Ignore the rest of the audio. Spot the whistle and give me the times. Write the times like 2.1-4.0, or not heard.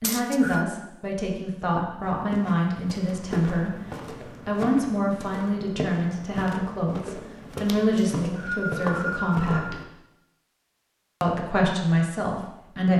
0.0-0.7, 8.0-9.7.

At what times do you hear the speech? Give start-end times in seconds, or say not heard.
0.0-3.7, 4.5-9.8, 11.2-12.9.